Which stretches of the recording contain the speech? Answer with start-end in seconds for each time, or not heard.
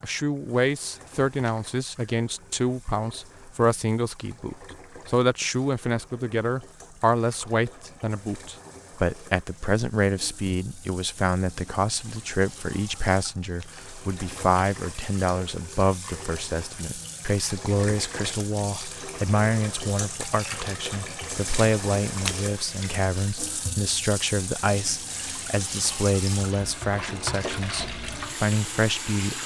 0.0-29.4.